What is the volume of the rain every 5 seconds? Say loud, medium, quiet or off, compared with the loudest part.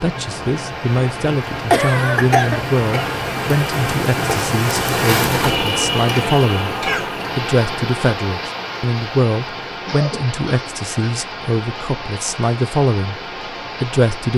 loud, loud, medium.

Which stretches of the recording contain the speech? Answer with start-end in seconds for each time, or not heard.
0.0-6.8, 7.3-13.2, 13.8-14.3.